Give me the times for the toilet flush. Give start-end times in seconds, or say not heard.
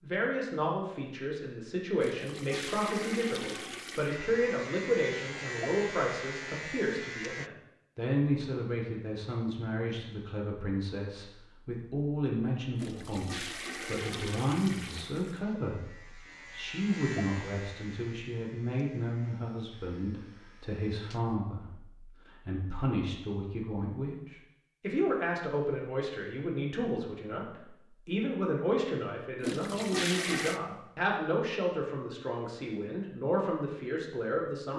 2.0-4.2, 12.8-15.3, 29.4-30.6.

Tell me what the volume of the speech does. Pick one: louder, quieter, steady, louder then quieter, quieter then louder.
steady.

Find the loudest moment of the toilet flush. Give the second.
30 s.